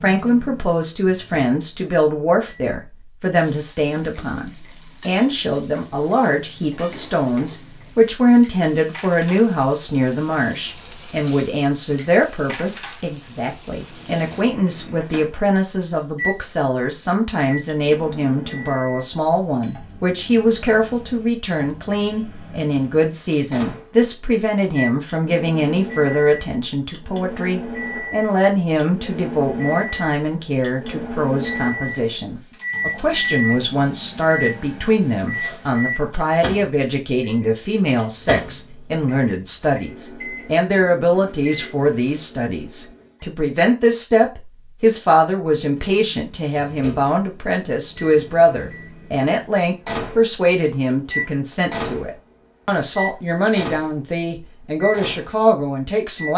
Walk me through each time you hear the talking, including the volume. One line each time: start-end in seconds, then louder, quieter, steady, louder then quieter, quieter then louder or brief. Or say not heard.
0.0-56.3 steady.